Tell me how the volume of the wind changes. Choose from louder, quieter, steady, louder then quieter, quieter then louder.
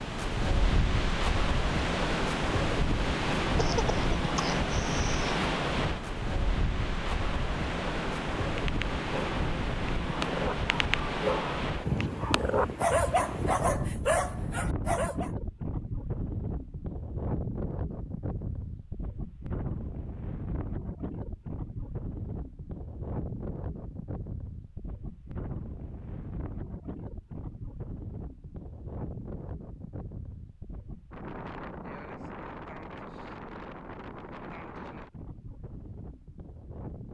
quieter.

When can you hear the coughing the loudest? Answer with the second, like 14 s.
4 s.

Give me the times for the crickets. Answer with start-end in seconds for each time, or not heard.
not heard.